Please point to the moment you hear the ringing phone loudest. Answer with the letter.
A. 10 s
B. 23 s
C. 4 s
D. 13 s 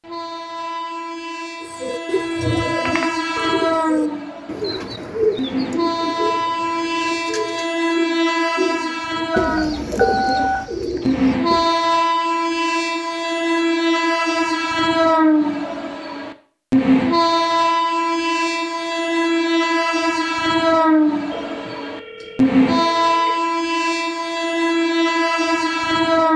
A.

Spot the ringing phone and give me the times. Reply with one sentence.
The ringing phone can be heard from 2.9 to 3.6 s, from 9.3 to 10.6 s and from 21.3 to 23.3 s.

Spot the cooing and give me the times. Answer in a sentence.
You can hear the cooing from 1.6 to 11.7 s.